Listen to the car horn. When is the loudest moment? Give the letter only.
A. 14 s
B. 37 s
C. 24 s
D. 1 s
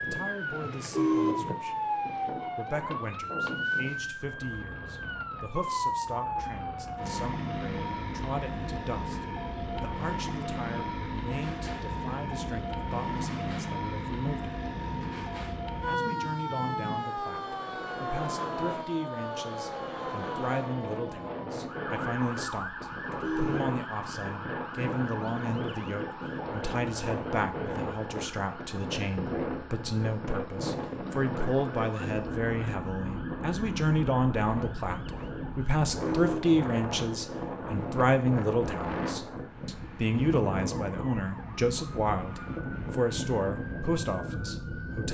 D.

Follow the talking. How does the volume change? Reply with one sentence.
The loudness of the talking goes up.